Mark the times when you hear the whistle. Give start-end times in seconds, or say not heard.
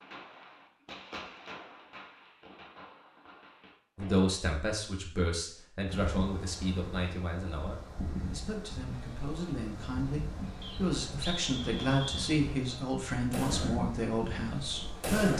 10.6-12.2.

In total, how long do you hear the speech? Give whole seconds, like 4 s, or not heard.
11 s.